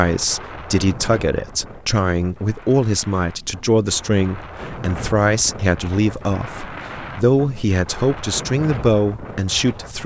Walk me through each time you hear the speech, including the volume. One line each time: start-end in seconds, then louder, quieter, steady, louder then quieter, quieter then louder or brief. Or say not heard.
0.0-10.0 steady.